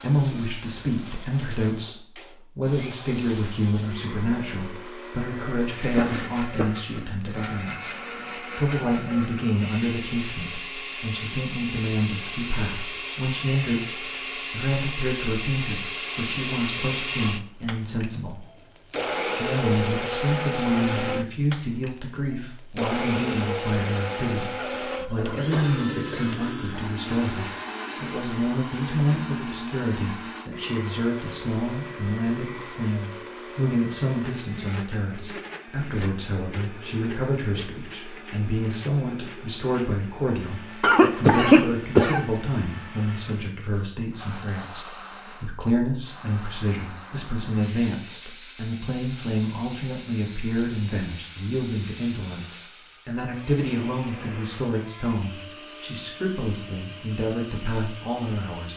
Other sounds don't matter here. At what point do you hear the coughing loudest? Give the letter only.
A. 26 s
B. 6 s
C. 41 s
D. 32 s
C.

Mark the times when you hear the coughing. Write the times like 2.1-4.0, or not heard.
5.3-6.8, 24.6-26.4, 40.8-42.2.